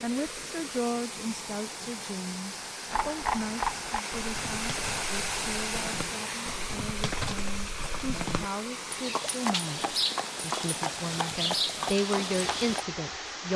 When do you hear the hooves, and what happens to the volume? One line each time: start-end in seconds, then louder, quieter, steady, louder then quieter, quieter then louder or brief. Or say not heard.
2.9-12.8 quieter then louder.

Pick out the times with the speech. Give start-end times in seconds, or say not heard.
0.0-13.5.